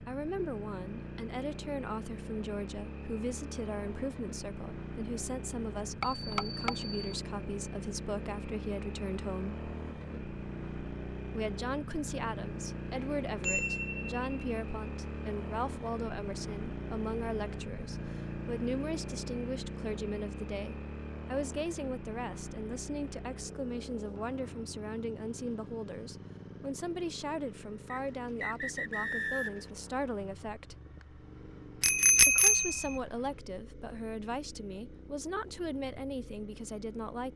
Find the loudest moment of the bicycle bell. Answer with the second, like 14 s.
32 s.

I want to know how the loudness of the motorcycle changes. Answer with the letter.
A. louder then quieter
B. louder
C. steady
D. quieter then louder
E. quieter
E.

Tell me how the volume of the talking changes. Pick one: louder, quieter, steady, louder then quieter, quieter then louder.
steady.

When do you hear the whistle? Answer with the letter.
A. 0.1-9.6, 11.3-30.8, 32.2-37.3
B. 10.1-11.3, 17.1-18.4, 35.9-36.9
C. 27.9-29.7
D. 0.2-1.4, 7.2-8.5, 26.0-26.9
C.